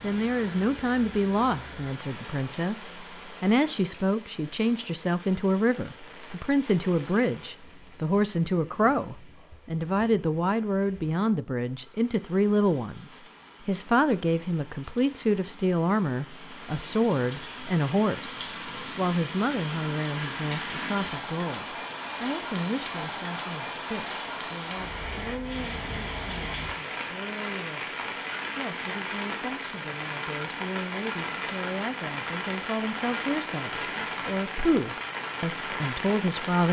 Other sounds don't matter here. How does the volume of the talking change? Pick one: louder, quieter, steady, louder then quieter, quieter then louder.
quieter then louder.